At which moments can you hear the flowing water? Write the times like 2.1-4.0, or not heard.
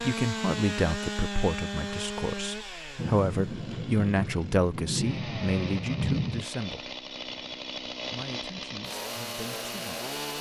not heard.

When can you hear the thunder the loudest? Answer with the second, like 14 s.
6 s.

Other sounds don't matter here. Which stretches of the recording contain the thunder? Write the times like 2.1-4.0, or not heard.
3.0-6.5.